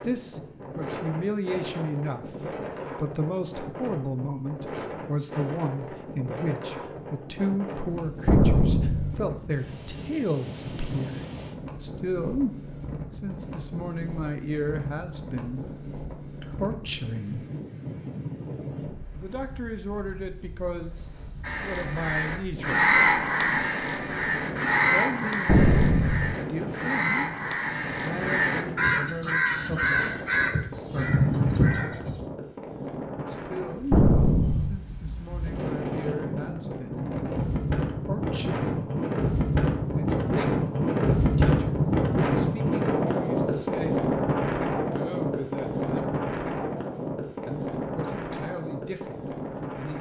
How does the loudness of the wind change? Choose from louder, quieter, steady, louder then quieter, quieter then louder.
louder.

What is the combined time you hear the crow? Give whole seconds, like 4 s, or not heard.
11 s.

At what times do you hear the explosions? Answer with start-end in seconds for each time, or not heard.
8.2-9.2, 25.4-26.4, 33.9-34.8.